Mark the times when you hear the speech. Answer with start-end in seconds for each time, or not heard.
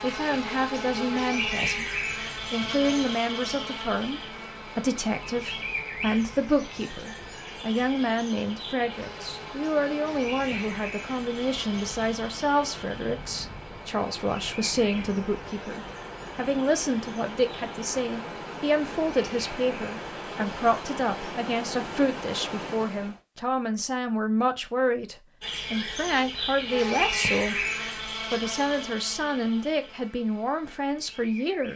0.0-27.6, 28.3-31.7.